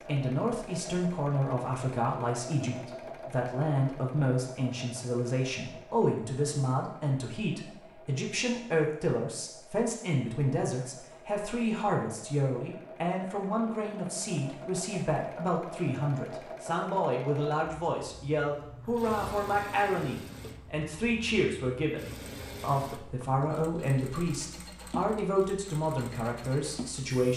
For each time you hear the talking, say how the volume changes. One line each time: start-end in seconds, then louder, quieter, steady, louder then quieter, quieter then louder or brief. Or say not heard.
0.1-27.3 steady.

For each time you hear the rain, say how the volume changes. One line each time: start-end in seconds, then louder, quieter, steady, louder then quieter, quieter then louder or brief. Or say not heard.
not heard.